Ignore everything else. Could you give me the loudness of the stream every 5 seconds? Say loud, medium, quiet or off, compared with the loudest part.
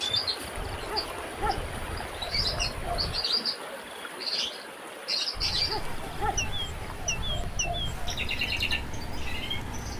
loud, medium.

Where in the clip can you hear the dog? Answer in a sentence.
You can hear the dog from 0.6 to 3.2 s and from 5.3 to 8.2 s.